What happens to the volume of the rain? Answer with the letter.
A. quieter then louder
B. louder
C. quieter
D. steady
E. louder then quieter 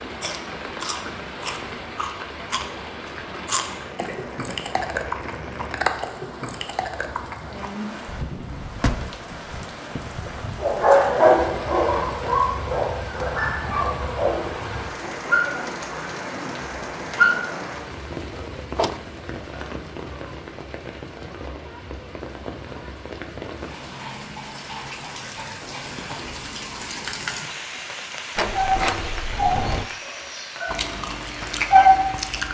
D.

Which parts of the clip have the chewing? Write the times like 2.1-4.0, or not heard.
0.2-7.7, 30.6-32.5.